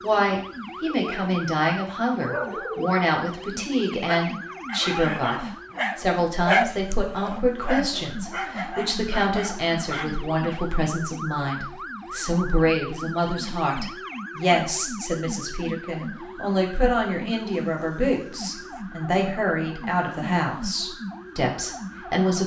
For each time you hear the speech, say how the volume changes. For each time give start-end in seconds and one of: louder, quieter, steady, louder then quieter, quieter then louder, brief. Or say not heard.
0.0-22.4 steady.